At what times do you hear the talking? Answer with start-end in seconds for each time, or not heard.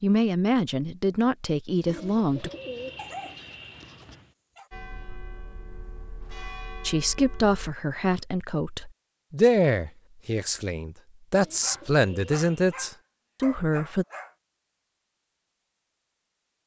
0.0-2.5, 6.8-14.1.